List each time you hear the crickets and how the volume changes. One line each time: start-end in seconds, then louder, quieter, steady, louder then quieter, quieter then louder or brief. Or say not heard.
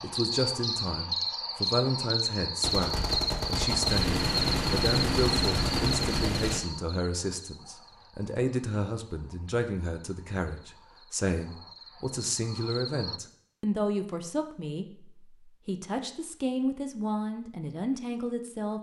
0.0-13.2 quieter then louder.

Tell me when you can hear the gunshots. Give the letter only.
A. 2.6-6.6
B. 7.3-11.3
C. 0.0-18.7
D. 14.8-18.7
A.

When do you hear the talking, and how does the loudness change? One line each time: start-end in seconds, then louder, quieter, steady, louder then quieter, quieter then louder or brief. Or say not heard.
0.0-18.7 steady.